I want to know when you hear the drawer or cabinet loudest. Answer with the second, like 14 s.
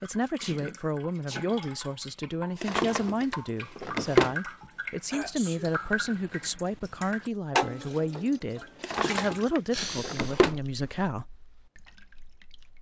4 s.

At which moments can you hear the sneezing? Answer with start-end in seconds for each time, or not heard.
0.4-1.6, 4.6-5.8, 9.7-10.3.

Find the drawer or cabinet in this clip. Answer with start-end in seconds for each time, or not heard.
2.6-4.3, 8.8-10.6.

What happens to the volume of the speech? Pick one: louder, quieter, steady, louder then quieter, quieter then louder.
steady.